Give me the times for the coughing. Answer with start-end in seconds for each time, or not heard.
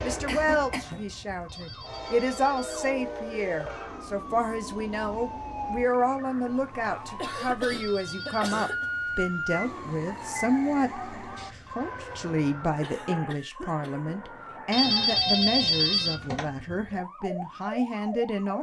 0.1-1.1, 7.2-8.8, 12.8-14.2.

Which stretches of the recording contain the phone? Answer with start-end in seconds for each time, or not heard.
1.4-3.3, 7.6-8.6, 14.7-16.4.